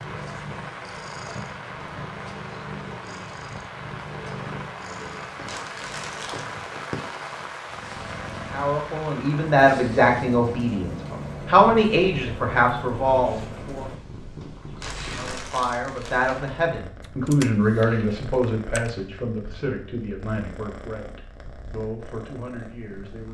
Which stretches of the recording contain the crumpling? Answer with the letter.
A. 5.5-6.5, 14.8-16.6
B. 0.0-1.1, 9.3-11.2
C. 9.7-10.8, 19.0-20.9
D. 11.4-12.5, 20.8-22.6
A.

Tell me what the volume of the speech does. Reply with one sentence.
The volume of the speech goes down.